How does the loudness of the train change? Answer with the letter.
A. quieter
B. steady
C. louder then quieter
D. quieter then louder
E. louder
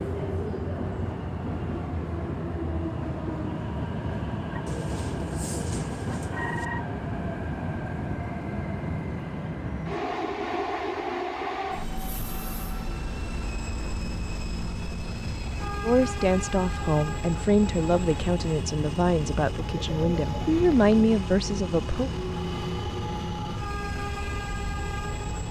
B.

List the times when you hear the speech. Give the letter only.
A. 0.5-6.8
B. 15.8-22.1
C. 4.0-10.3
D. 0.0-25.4
B.